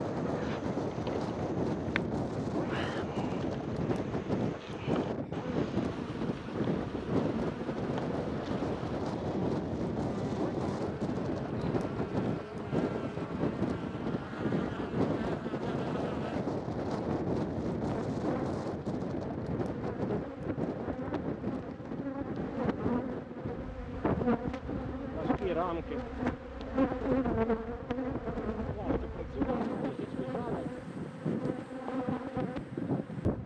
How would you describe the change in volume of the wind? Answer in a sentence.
The loudness of the wind goes down.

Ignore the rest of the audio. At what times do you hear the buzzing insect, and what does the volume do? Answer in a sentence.
You can hear the buzzing insect from 0.0 to 33.4 s, getting louder.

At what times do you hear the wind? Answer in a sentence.
The wind can be heard from 0.0 to 33.4 s.